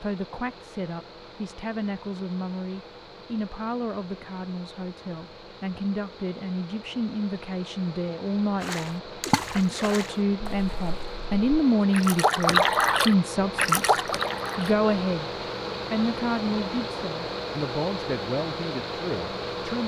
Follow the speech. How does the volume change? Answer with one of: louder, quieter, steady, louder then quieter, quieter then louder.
louder then quieter.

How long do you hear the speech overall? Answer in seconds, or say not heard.
19 s.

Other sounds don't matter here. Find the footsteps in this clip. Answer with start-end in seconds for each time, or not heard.
not heard.